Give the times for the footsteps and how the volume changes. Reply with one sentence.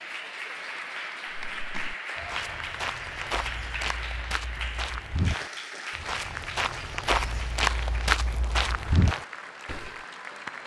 The footsteps can be heard from 1.2 to 9.9 s, getting louder.